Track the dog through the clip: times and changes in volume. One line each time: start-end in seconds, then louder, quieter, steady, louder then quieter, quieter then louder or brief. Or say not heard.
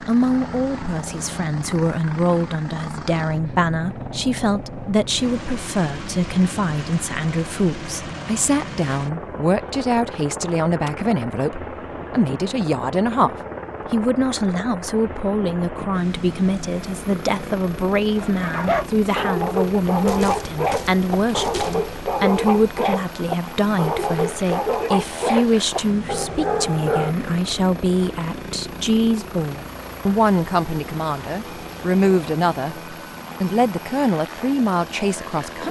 18.2-27.1 steady.